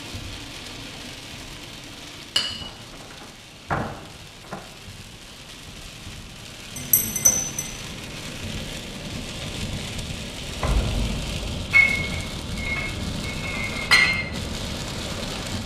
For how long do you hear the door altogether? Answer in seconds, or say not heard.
3 s.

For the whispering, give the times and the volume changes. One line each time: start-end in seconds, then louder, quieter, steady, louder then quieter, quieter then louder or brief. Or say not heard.
not heard.